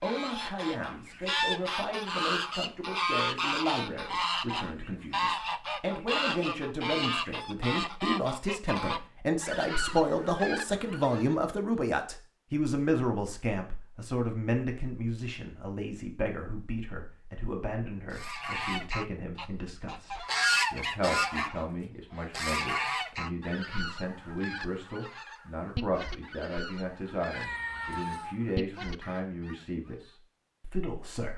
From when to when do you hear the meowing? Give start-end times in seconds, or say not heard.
27.3-28.4.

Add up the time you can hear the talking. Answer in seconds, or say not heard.
31 s.